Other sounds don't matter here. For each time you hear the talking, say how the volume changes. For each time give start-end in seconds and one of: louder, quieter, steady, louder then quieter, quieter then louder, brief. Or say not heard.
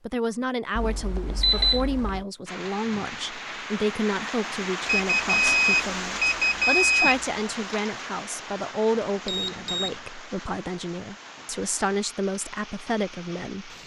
0.1-13.8 steady.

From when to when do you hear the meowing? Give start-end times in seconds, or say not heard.
not heard.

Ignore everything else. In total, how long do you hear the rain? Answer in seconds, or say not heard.
11 s.